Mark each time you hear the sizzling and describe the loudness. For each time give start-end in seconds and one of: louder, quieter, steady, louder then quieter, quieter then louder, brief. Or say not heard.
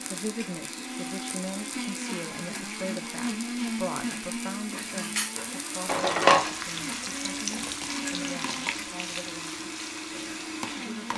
0.0-11.1 louder then quieter.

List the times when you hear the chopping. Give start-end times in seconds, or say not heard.
not heard.